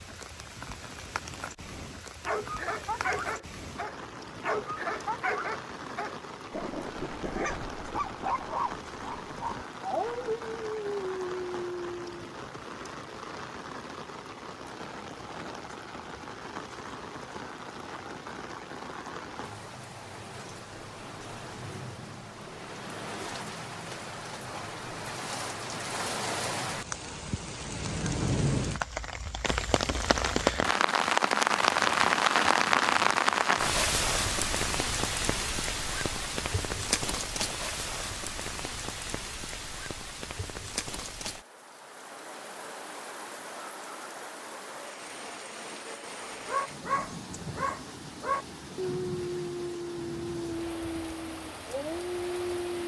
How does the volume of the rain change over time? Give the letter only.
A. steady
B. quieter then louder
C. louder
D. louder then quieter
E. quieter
D.